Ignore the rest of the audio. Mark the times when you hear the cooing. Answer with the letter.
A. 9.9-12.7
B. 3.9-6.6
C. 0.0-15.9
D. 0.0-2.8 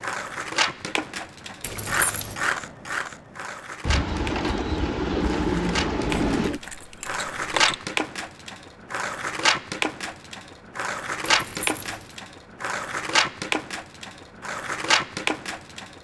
B.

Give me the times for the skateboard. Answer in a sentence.
You can hear the skateboard from 0.0 to 15.9 s.